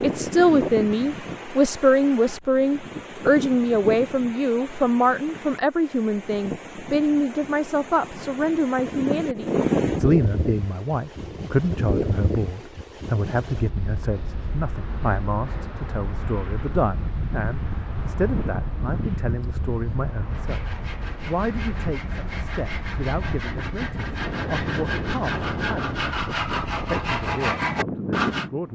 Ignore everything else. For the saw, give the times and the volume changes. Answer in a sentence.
You can hear the saw from 20.2 to 28.5 s, getting louder.